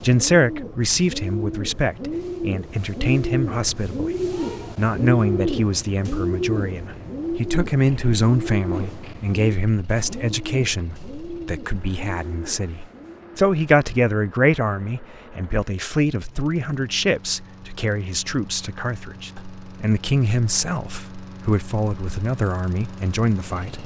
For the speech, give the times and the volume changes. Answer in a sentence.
You can hear the speech from 0.0 to 23.8 s, at a steady volume.